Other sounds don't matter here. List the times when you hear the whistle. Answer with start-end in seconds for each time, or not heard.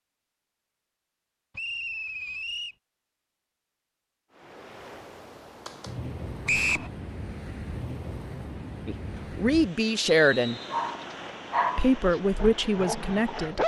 1.6-2.8, 6.5-6.9, 10.1-10.9.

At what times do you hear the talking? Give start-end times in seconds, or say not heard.
8.8-10.6, 11.8-13.6.